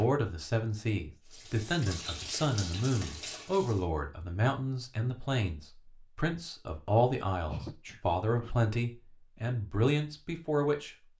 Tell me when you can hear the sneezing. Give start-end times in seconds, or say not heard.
7.5-8.6.